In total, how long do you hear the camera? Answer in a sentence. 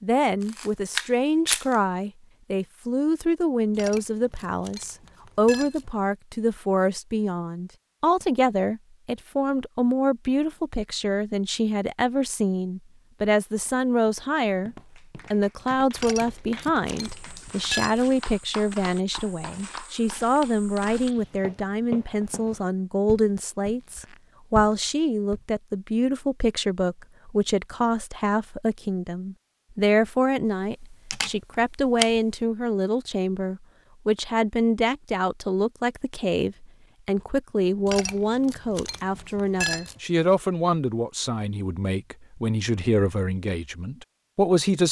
You can hear the camera for 3 seconds altogether.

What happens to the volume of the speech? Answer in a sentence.
The loudness of the speech stays about the same.